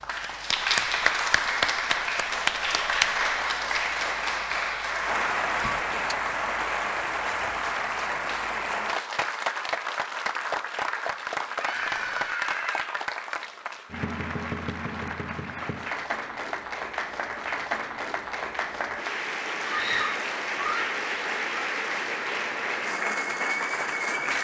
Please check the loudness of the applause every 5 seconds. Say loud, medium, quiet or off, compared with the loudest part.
loud, loud, medium, medium, loud.